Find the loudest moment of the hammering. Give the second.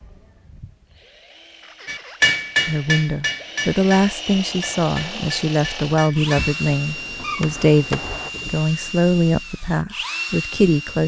2 s.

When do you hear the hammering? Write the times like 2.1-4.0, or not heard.
1.9-8.3.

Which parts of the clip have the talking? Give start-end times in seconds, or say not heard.
2.6-11.0.